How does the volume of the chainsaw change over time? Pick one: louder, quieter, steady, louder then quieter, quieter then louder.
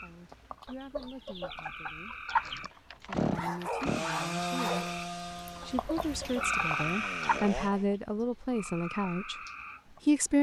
quieter then louder.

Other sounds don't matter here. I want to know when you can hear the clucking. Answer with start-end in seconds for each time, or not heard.
0.7-2.7, 5.6-7.5.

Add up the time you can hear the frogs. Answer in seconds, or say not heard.
10 s.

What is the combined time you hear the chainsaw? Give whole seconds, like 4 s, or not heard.
5 s.